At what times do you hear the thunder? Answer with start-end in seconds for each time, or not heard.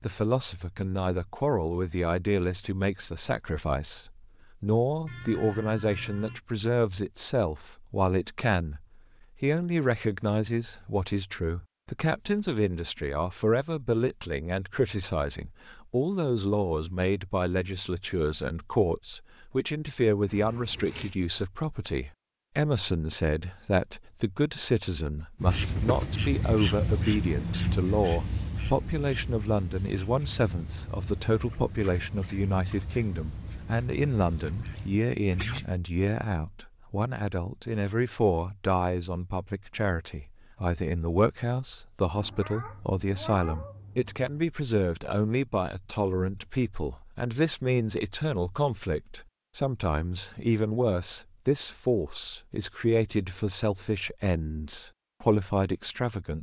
not heard.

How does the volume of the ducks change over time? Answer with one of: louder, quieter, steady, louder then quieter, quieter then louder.
quieter.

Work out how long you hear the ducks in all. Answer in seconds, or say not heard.
10 s.